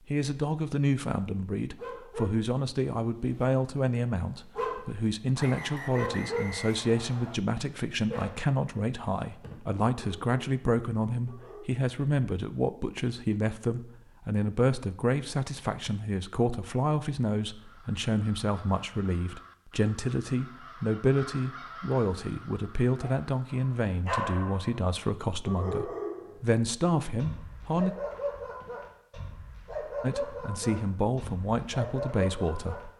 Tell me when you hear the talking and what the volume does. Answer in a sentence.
The talking can be heard from 0.1 to 27.9 s, at a steady volume; and briefly from 30.0 to 32.9 s.